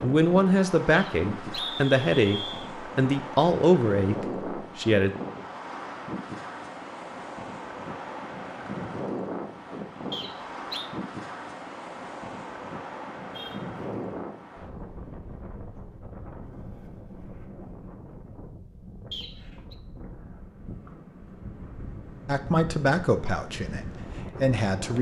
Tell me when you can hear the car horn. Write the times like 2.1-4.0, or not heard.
13.3-14.2.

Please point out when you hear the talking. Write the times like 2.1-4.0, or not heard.
0.0-5.1, 22.2-23.8, 24.4-24.9.